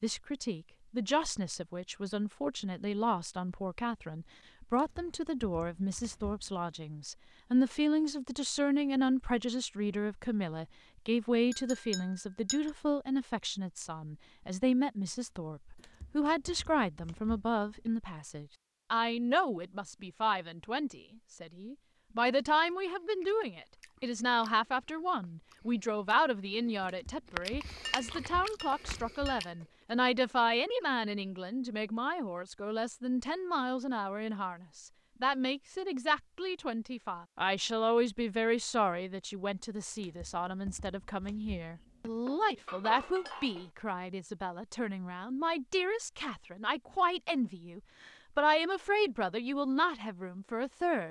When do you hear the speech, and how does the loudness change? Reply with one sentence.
The speech can be heard from 0.0 to 51.0 s, at a steady volume.